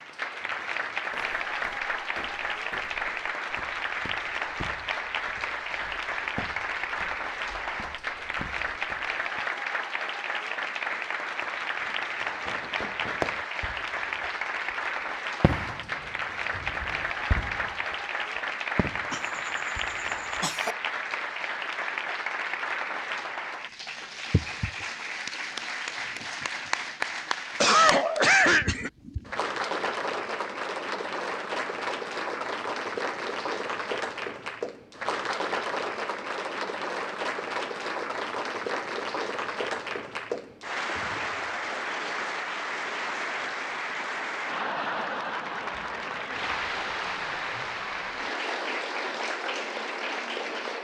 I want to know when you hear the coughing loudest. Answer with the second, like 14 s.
28 s.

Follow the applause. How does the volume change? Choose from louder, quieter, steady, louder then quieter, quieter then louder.
steady.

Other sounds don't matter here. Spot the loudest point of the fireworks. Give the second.
13 s.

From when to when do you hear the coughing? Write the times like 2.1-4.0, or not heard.
19.1-20.8, 27.6-28.9.